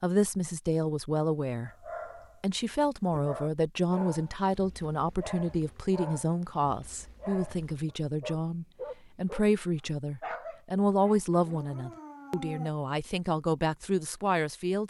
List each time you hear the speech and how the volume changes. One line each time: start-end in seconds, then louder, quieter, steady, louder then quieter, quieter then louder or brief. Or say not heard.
0.0-1.7 brief
2.4-14.8 steady.